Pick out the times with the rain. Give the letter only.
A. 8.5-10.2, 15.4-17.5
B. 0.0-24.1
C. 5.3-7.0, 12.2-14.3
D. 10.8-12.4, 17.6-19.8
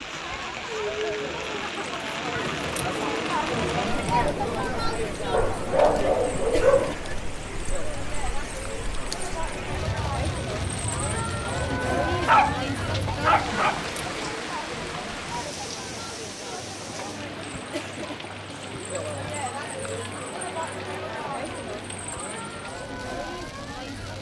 B.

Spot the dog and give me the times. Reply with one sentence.
You can hear the dog from 5.3 to 7.0 s and from 12.2 to 14.3 s.